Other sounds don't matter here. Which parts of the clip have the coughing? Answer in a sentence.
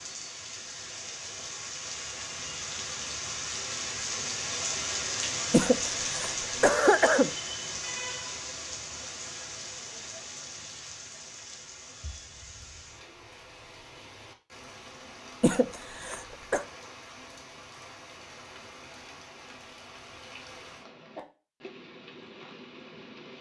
The coughing can be heard from 5.5 to 7.3 s and from 15.4 to 16.6 s.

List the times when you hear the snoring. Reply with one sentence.
You can't hear the snoring here.